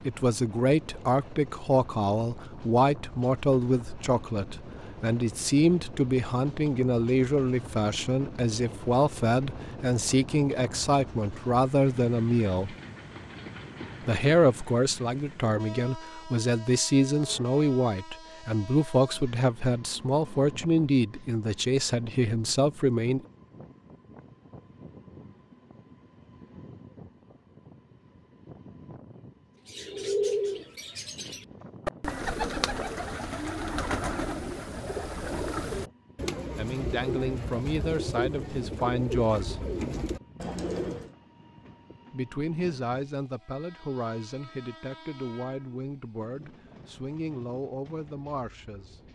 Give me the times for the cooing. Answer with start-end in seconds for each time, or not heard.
29.6-41.1.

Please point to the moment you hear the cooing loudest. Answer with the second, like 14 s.
30 s.